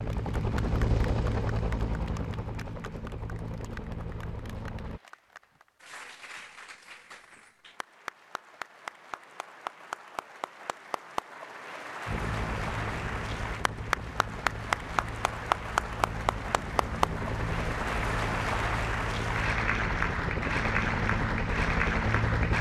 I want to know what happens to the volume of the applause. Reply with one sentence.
The volume of the applause goes up.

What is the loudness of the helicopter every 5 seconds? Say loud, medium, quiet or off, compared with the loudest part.
loud, off, medium, medium, loud.